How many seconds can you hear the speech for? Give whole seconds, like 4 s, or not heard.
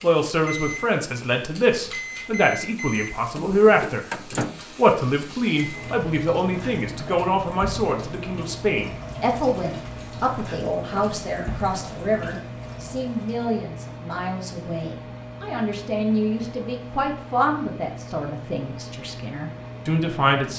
20 s.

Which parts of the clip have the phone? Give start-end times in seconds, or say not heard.
not heard.